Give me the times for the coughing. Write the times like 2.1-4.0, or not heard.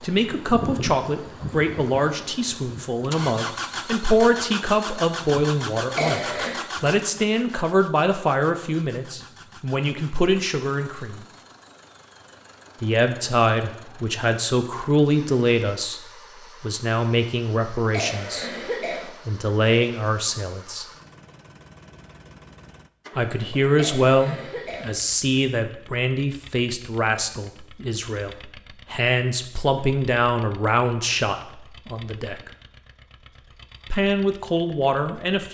6.0-6.6, 17.9-19.1, 23.8-24.9.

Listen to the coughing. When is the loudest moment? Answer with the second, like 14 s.
6 s.